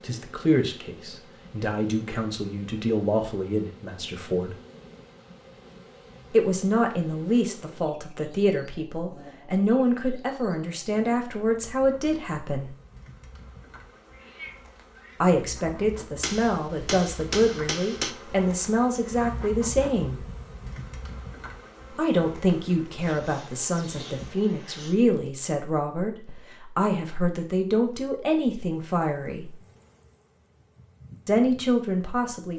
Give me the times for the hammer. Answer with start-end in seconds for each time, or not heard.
16.2-18.1.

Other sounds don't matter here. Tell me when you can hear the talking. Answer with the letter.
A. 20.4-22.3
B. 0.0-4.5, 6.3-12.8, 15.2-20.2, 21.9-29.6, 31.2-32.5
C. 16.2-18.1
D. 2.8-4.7
B.